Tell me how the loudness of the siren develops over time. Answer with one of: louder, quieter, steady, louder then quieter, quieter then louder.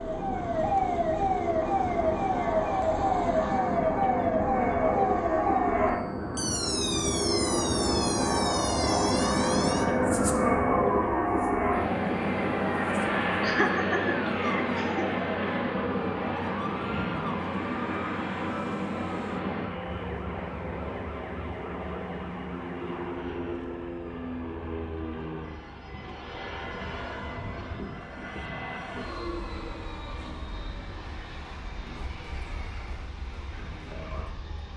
quieter.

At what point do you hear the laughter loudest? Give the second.
14 s.